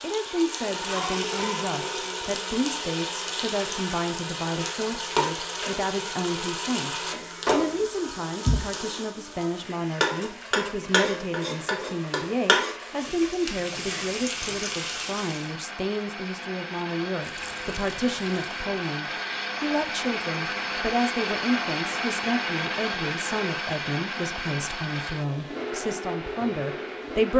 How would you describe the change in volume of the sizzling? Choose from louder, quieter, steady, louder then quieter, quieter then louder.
steady.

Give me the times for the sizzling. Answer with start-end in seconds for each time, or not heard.
0.0-15.5.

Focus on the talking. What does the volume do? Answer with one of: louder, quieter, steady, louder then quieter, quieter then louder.
steady.